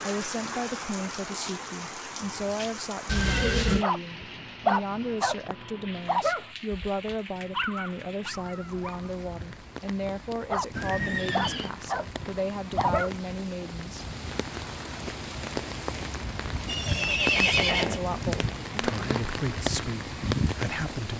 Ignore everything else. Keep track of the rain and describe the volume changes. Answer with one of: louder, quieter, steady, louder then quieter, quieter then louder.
quieter then louder.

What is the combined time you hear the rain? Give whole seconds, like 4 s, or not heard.
21 s.